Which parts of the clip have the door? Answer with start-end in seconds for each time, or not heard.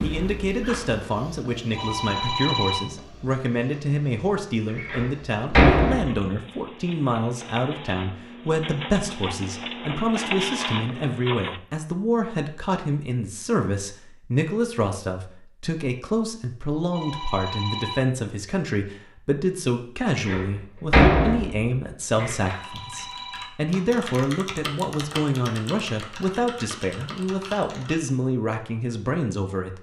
4.8-6.2, 20.1-22.6.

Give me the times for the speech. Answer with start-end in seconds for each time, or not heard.
0.0-29.7.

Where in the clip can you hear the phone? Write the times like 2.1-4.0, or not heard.
1.8-2.9, 16.9-18.1, 22.4-23.6.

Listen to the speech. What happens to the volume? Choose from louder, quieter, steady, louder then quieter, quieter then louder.
steady.